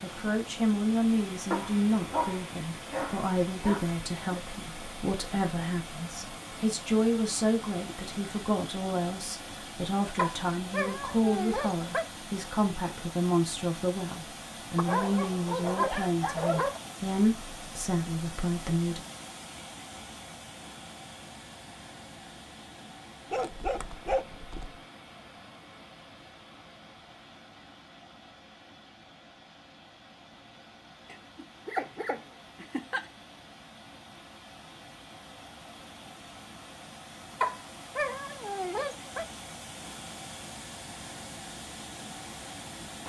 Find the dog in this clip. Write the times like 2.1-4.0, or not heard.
1.5-4.4, 10.2-12.1, 14.8-16.8, 23.3-24.8, 31.1-33.0, 37.4-39.2.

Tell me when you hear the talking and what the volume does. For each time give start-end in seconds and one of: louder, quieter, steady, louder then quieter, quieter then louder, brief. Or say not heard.
0.0-19.0 steady.